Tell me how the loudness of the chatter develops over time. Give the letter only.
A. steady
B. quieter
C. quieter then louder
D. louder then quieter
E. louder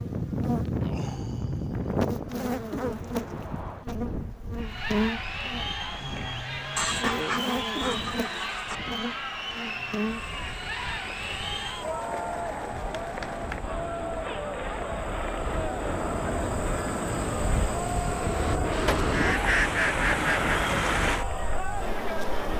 A.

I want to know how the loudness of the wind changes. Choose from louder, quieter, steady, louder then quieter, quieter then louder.
quieter then louder.